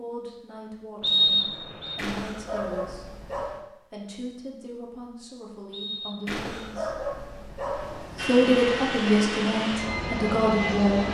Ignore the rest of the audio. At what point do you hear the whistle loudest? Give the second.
1 s.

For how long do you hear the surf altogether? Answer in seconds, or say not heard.
not heard.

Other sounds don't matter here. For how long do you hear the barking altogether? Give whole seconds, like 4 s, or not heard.
4 s.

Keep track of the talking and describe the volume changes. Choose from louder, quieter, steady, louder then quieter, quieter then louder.
louder.